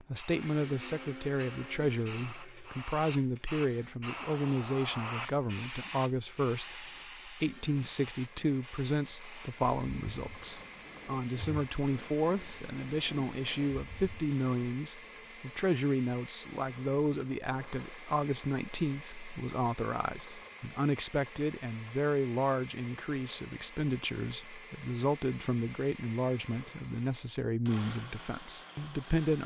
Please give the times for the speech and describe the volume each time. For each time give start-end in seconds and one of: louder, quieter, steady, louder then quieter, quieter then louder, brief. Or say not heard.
0.1-29.4 steady.